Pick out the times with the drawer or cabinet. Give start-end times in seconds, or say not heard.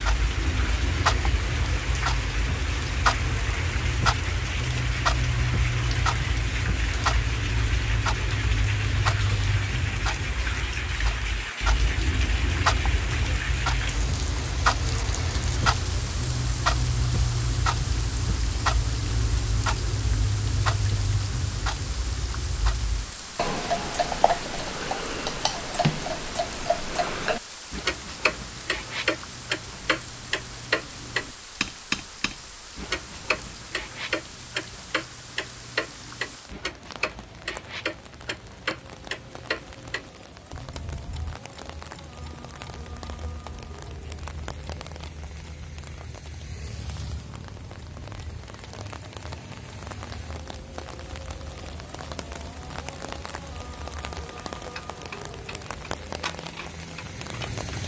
not heard.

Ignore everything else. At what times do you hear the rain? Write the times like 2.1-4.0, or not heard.
0.0-57.8.